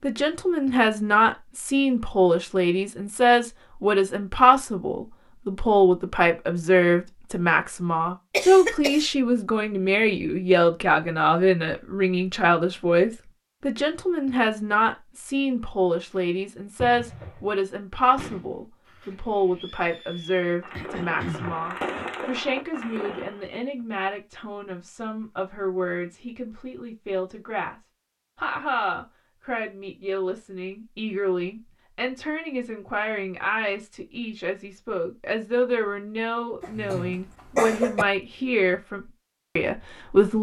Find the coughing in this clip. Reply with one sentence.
You can hear the coughing from 8.3 to 9.1 s, from 20.7 to 22.1 s and from 36.6 to 38.0 s.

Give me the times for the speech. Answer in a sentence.
You can hear the speech from 0.0 to 40.3 s.